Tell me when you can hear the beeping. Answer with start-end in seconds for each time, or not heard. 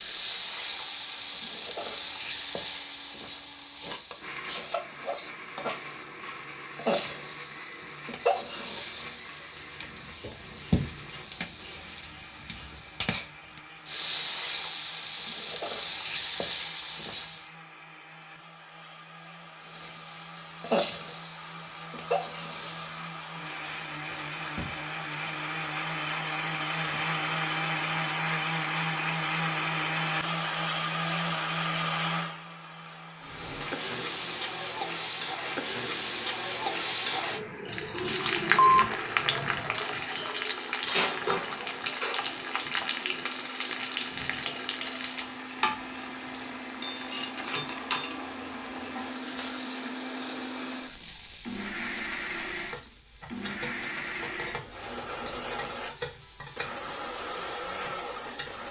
38.5-39.5.